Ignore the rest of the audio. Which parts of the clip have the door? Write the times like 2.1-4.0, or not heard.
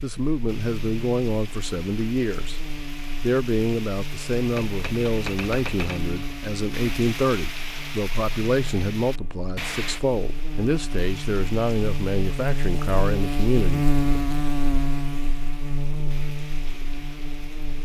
not heard.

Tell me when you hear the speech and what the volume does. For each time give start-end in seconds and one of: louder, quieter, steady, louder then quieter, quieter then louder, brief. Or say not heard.
0.0-2.6 brief
3.2-13.9 steady.